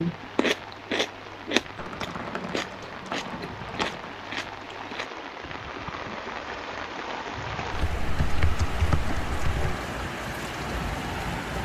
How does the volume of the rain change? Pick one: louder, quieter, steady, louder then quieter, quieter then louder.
louder.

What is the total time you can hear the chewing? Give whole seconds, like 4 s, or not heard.
5 s.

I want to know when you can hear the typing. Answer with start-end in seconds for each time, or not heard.
1.8-4.2, 7.7-9.8.